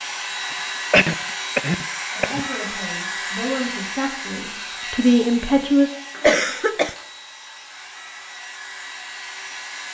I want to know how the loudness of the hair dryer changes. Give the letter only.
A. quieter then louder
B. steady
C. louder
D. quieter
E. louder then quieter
D.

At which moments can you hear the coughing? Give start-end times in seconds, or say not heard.
0.5-2.5, 6.2-7.0.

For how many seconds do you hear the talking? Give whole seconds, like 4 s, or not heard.
4 s.